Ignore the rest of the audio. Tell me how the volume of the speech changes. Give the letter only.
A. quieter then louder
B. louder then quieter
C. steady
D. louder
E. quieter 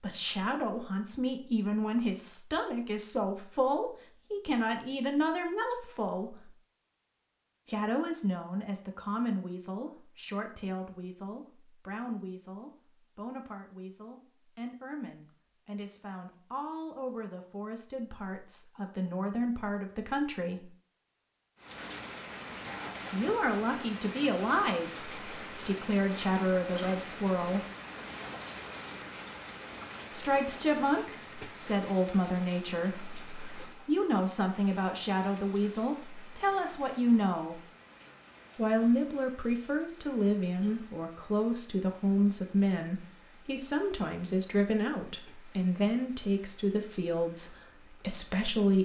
A.